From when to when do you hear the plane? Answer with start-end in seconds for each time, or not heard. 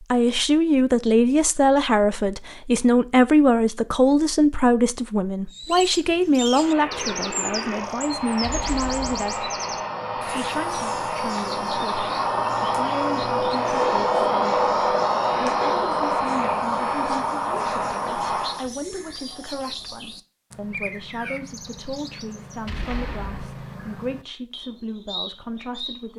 6.5-18.6.